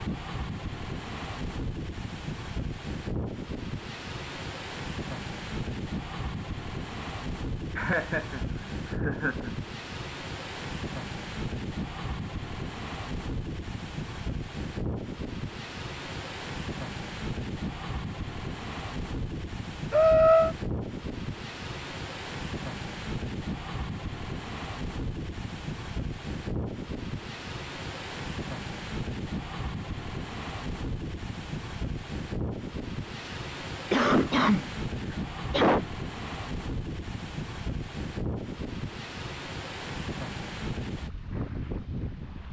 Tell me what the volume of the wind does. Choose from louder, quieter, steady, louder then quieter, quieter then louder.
steady.